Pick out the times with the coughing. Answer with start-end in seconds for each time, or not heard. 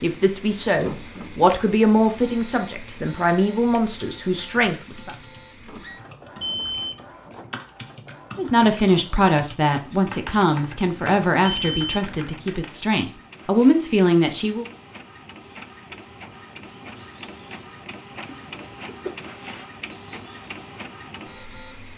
18.2-19.1.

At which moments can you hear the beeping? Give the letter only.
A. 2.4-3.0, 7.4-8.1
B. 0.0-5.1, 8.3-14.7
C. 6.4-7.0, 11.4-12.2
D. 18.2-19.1
C.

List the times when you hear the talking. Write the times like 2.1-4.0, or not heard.
0.0-5.1, 8.3-14.7.